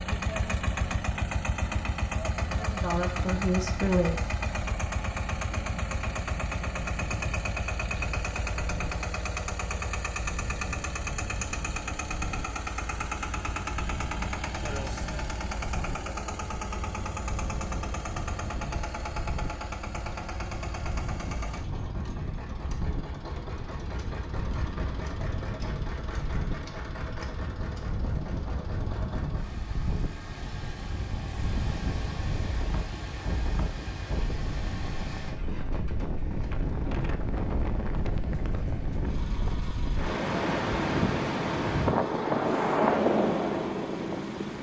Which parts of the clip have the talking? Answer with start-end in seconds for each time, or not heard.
2.5-4.3.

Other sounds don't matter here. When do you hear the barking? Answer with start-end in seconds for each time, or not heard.
not heard.